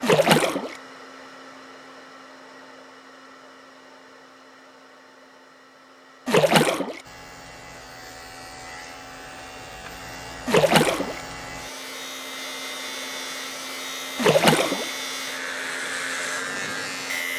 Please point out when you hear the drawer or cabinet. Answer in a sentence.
The drawer or cabinet can't be heard in this clip.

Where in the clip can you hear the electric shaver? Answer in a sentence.
The electric shaver can be heard from 7.0 to 17.3 s.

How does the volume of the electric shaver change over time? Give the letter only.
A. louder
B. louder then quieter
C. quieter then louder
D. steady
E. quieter
A.